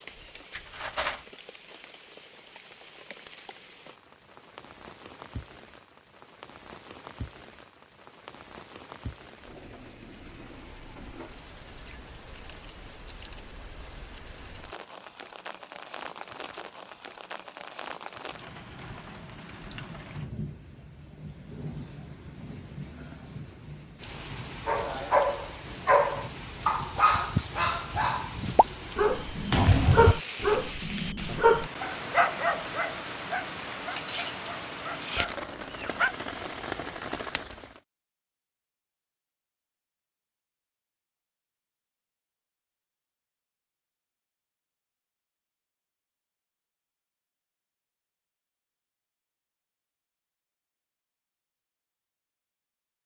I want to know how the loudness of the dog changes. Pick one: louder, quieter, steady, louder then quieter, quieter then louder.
quieter.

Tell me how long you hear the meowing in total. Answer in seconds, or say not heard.
2 s.